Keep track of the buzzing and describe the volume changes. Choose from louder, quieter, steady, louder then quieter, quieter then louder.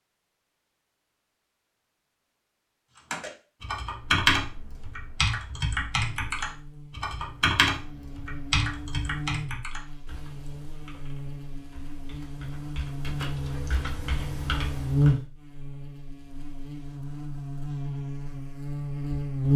louder then quieter.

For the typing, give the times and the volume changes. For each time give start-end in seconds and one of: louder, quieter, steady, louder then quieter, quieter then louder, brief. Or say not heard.
3.1-15.2 quieter then louder.